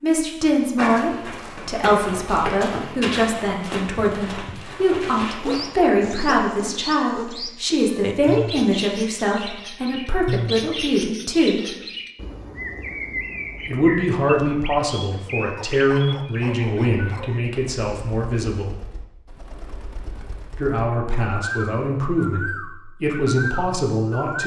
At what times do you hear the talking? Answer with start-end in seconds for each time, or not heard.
0.0-11.7, 13.7-18.7, 20.6-24.4.